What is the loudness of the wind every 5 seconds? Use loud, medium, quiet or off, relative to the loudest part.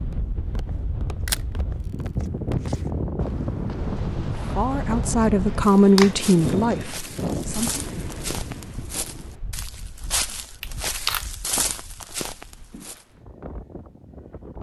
loud, loud, quiet.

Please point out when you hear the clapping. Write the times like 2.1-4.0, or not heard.
not heard.